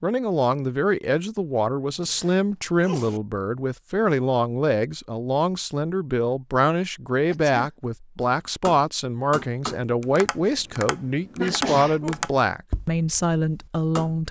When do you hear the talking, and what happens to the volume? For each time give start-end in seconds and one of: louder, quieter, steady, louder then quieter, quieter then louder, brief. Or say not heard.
0.0-14.2 steady.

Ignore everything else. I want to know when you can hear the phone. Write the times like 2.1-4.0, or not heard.
not heard.